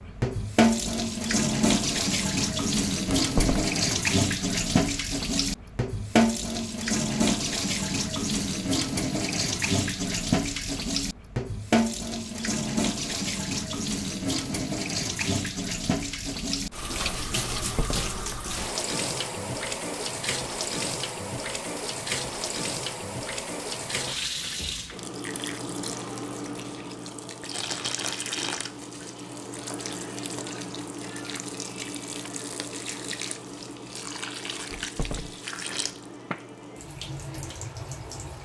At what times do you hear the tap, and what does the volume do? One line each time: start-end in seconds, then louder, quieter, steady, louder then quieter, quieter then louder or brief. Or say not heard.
0.0-38.4 quieter.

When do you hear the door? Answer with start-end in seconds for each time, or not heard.
3.0-3.8, 17.4-18.4, 34.7-35.4.